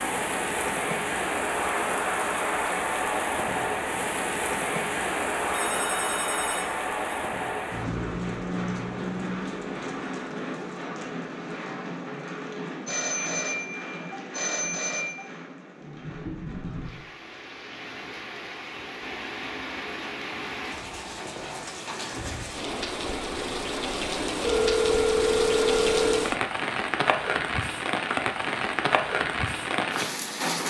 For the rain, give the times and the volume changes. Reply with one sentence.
You can hear the rain from 0.0 to 30.6 s, getting quieter then louder.